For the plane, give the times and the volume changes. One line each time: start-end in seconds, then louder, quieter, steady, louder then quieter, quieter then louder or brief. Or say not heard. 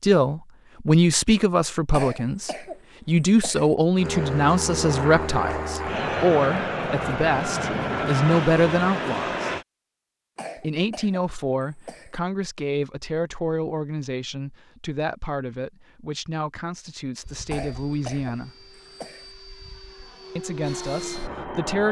4.0-9.7 steady
17.2-21.8 louder.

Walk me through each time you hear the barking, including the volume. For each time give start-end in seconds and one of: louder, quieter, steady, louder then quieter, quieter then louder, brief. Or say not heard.
not heard.